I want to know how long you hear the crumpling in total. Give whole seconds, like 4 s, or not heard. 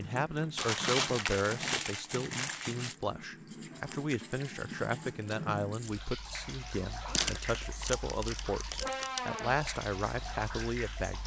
5 s.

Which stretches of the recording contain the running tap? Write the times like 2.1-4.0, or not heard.
0.0-11.2.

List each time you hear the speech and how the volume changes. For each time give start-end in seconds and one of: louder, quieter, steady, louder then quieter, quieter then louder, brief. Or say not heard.
0.0-11.2 steady.